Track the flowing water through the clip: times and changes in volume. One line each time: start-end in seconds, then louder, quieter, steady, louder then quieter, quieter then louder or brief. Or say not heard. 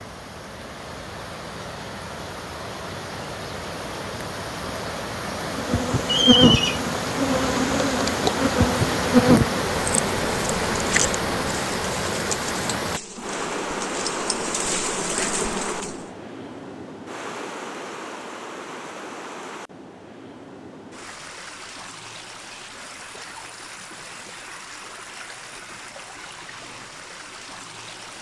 0.0-28.1 louder then quieter.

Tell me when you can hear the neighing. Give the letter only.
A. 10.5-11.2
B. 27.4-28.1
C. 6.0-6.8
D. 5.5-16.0
C.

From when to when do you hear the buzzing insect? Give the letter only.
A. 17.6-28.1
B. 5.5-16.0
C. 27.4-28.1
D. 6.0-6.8
B.